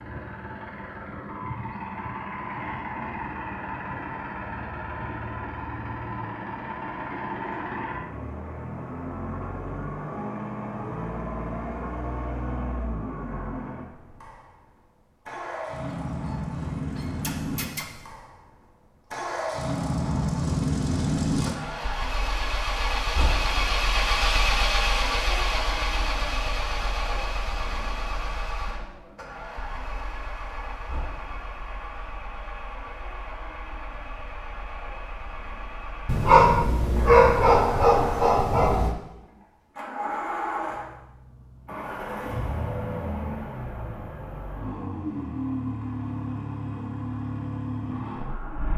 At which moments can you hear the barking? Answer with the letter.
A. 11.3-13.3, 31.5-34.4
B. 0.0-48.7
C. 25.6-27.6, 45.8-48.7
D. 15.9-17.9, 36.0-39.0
D.